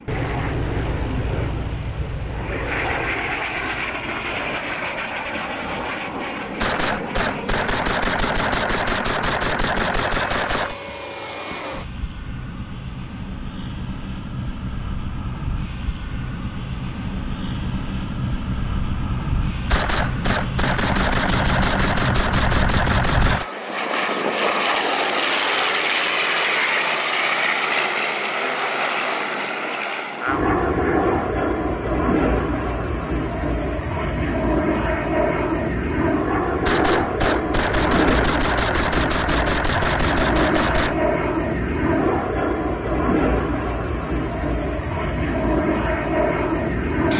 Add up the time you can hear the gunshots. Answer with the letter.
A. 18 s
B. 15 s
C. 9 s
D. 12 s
D.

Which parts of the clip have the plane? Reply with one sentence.
You can hear the plane from 0.0 to 47.1 s.